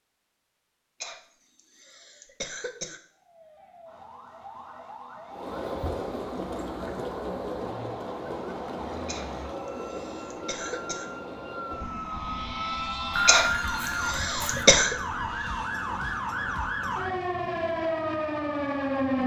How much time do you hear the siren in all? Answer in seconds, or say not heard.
16 s.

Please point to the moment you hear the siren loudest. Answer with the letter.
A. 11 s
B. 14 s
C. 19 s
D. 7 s
C.